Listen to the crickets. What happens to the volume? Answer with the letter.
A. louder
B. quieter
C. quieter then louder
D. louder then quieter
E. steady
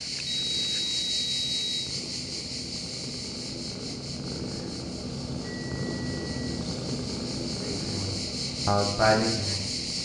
C.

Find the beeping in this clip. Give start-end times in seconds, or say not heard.
0.2-1.9, 5.4-6.7.